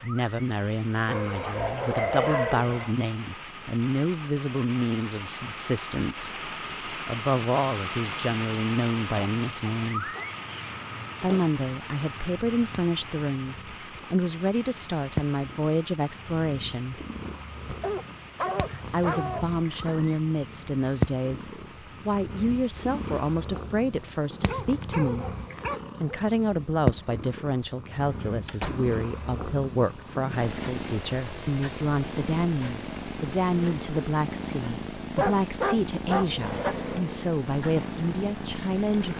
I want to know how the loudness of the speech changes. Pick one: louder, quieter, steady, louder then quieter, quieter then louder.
steady.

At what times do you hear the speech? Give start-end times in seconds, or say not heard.
0.0-10.1, 11.2-17.0, 18.9-25.3, 26.0-39.1.